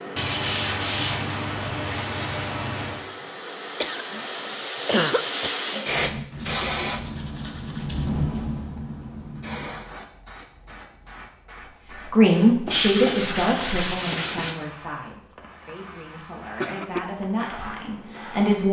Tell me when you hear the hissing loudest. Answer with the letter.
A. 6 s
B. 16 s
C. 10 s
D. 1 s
A.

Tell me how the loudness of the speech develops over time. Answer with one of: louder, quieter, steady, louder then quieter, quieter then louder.
quieter then louder.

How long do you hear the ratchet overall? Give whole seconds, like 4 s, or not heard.
not heard.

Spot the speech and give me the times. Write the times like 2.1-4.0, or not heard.
12.1-18.6.